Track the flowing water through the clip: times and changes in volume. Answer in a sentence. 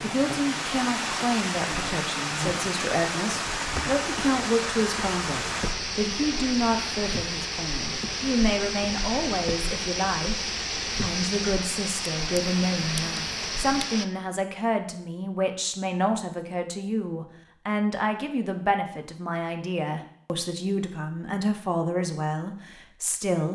You can hear the flowing water from 0.0 to 14.1 s, at a steady volume.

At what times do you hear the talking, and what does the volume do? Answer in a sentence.
The talking can be heard from 0.0 to 23.4 s, at a steady volume.